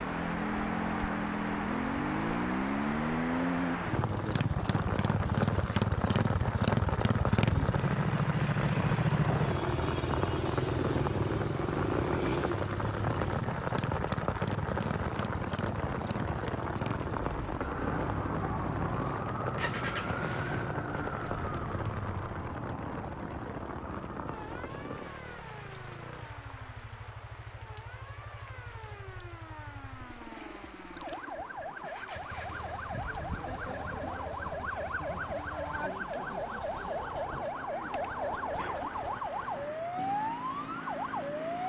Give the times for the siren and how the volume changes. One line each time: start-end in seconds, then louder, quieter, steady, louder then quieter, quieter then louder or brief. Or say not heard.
17.6-41.6 quieter then louder.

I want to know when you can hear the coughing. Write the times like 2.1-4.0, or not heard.
not heard.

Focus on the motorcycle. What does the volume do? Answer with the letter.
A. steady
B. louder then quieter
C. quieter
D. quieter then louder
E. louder
C.